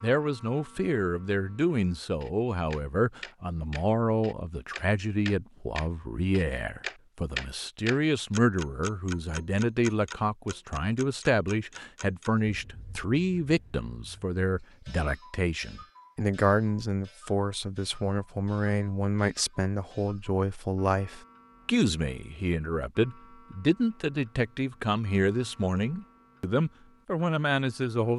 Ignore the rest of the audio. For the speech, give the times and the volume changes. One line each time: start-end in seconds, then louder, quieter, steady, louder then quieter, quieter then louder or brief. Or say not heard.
0.0-28.1 steady.